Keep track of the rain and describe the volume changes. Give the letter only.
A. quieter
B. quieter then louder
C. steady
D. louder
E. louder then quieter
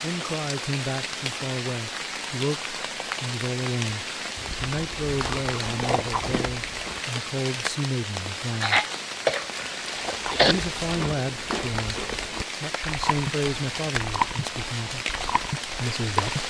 C.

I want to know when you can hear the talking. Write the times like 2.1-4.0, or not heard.
0.0-8.8, 10.4-15.1, 15.7-16.4.